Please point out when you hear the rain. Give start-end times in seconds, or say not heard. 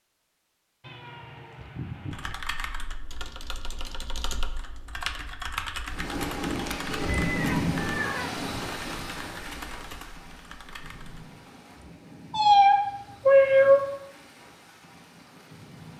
5.8-15.9.